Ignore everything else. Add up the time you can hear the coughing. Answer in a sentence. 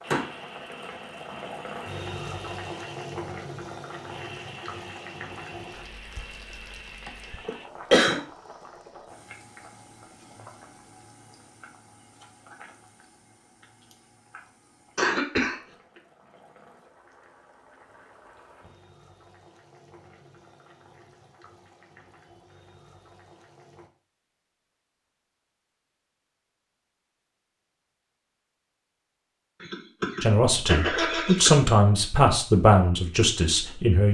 You can hear the coughing for 4 seconds altogether.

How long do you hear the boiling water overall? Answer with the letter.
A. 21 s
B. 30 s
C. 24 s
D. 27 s
C.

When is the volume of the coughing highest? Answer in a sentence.
The volume of the coughing peaks at 8 seconds.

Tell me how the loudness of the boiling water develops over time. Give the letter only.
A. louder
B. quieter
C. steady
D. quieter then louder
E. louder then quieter
B.